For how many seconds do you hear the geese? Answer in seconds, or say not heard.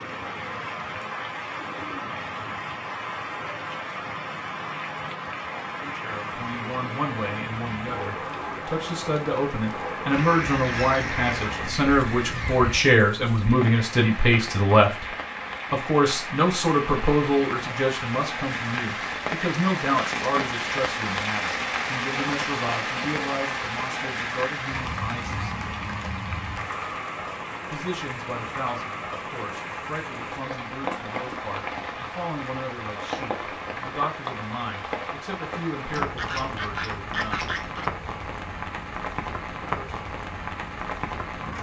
5 s.